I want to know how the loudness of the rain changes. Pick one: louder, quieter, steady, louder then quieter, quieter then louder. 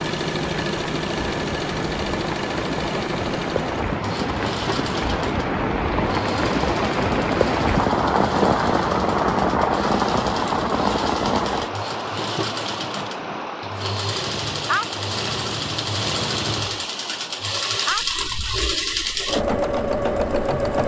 louder then quieter.